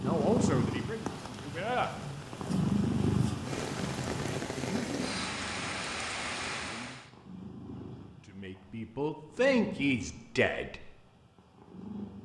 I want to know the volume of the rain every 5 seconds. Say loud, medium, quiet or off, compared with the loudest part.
loud, loud, off.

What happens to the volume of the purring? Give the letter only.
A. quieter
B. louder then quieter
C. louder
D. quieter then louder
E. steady
A.